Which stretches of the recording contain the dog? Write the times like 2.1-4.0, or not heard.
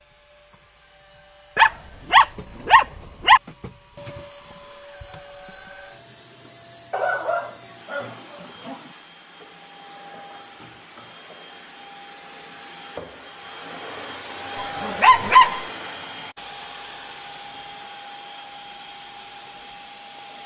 1.6-3.4, 6.9-8.9, 14.6-15.6.